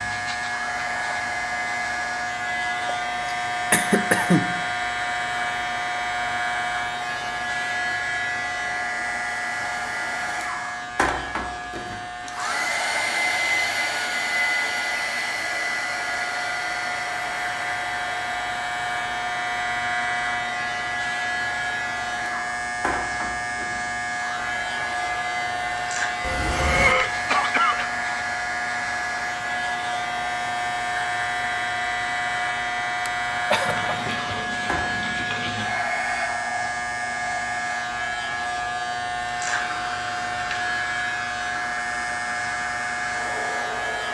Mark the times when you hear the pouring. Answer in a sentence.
The pouring can be heard from 33.6 to 35.6 s.